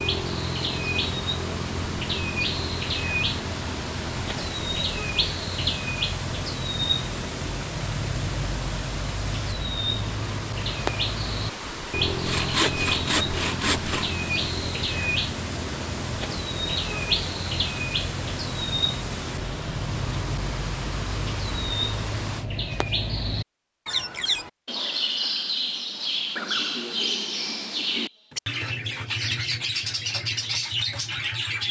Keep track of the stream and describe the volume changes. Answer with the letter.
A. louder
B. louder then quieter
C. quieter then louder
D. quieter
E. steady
E.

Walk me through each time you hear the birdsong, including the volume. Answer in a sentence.
The birdsong can be heard from 0.0 to 31.6 s, at a steady volume.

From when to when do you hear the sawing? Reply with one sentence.
You can hear the sawing from 12.1 to 14.1 s.